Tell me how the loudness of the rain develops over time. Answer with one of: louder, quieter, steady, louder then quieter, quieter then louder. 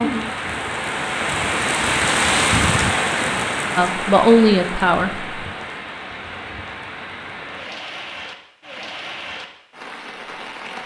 quieter.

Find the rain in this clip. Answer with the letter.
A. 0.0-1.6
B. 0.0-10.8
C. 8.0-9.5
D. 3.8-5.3
B.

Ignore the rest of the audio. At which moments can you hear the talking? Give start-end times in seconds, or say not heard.
3.8-5.3.